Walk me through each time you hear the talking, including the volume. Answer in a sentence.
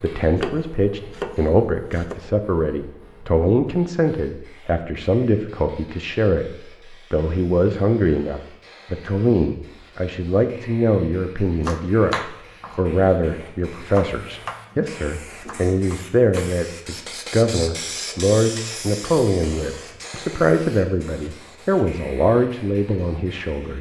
The talking can be heard from 0.0 to 23.7 s, at a steady volume.